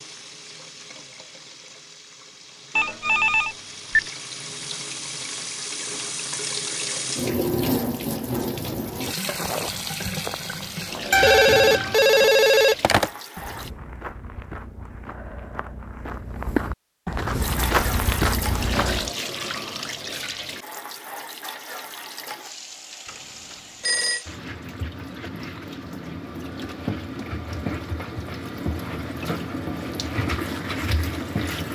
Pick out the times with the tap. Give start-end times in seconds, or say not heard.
0.0-13.7, 17.4-31.7.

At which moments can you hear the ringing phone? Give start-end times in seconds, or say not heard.
2.8-4.0, 11.1-13.1, 23.1-24.2.